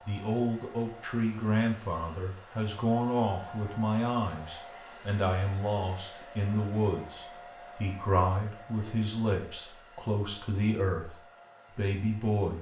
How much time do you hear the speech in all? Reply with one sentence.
You can hear the speech for 12 seconds altogether.